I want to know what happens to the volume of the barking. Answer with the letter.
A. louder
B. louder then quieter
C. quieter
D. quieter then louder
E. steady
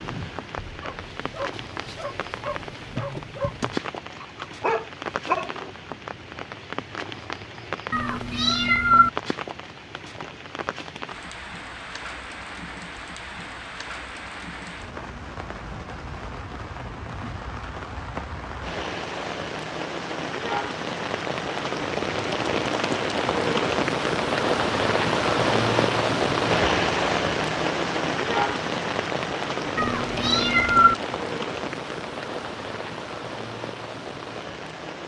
A.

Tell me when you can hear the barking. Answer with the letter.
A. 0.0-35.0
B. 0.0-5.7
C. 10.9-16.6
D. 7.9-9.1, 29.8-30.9
B.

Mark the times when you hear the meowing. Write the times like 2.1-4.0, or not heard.
7.9-9.1, 29.8-30.9.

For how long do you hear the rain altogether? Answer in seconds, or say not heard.
35 s.